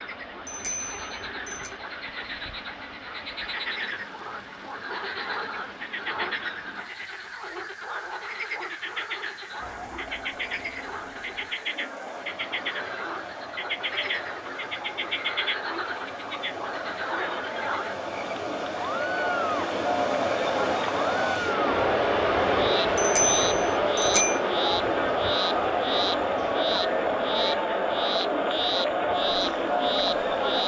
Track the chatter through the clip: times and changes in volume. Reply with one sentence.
The chatter can be heard from 9.6 to 30.6 s, getting louder.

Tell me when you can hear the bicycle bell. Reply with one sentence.
The bicycle bell can be heard from 0.5 to 1.7 s and from 22.9 to 24.4 s.